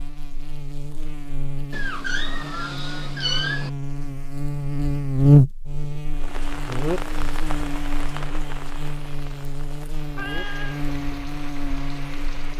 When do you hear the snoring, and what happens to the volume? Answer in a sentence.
You can't hear the snoring here.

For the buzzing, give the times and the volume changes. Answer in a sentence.
The buzzing can be heard from 0.0 to 12.5 s, getting louder then quieter.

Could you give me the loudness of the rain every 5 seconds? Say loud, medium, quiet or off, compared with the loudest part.
off, loud, medium.